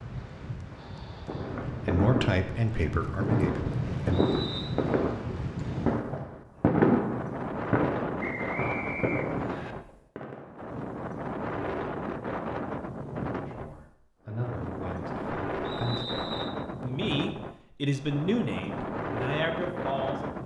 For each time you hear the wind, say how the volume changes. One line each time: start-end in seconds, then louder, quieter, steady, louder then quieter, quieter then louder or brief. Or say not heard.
0.0-20.4 steady.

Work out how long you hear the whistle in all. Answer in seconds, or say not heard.
3 s.